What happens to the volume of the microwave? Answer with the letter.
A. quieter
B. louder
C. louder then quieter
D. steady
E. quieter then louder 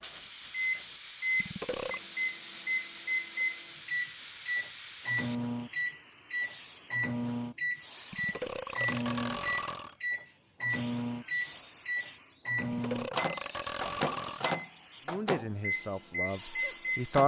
D.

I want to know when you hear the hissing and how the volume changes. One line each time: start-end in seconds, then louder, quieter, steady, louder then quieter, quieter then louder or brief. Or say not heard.
0.0-17.2 steady.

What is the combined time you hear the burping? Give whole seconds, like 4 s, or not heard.
4 s.